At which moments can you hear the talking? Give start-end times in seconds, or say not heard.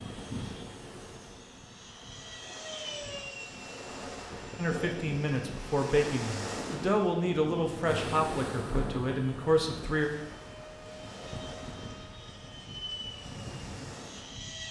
4.5-10.1.